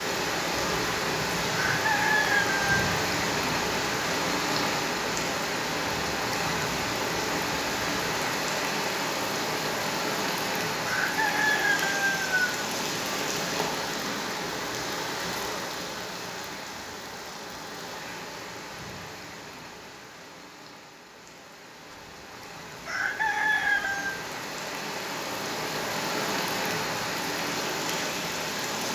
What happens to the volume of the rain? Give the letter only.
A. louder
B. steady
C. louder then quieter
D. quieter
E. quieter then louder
E.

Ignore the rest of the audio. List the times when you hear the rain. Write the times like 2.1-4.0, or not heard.
0.0-28.9.